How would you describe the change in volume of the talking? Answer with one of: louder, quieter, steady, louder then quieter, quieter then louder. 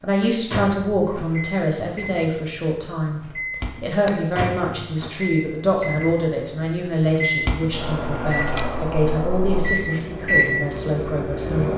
steady.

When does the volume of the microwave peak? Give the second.
10 s.